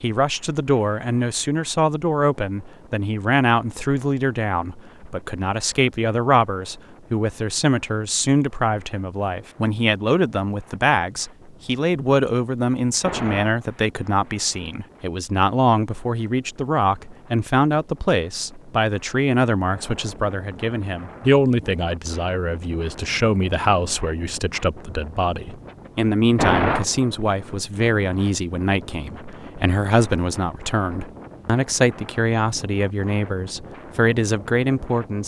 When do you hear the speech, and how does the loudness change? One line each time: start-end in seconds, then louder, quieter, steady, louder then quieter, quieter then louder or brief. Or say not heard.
0.0-35.2 steady.